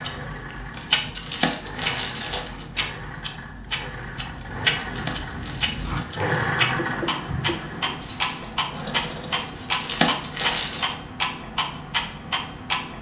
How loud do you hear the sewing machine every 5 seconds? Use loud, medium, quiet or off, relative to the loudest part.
medium, loud, off.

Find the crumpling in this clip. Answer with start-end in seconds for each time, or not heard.
0.8-2.6, 4.3-6.3, 9.3-10.9.